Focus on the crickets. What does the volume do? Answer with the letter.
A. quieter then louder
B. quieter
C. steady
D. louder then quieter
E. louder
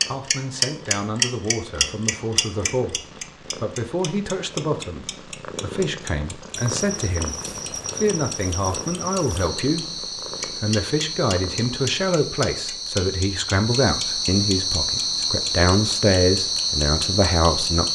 E.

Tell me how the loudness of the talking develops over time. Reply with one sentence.
The loudness of the talking goes up.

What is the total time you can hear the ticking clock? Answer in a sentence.
The ticking clock can be heard for 17 seconds in total.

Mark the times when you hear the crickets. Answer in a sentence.
The crickets can be heard from 6.5 to 17.9 s.